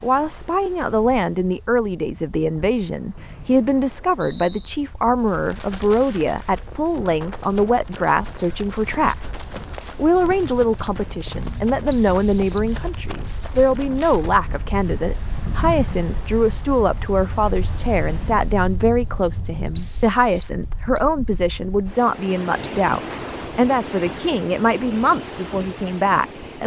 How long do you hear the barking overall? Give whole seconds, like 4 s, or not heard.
not heard.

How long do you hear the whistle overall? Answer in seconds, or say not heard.
4 s.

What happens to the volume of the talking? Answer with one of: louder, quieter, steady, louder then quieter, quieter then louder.
steady.